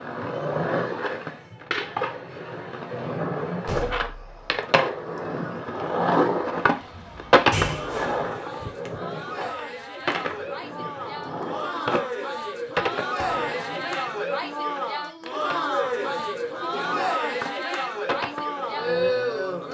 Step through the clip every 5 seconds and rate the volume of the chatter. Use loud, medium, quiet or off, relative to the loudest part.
quiet, medium, loud, loud.